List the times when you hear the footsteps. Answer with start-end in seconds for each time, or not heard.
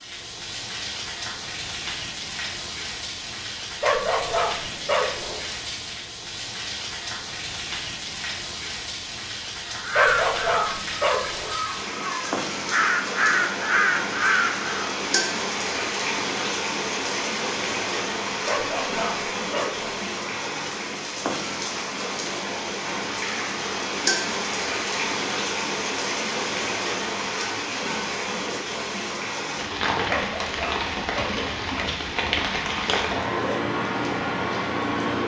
not heard.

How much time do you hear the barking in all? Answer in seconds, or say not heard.
6 s.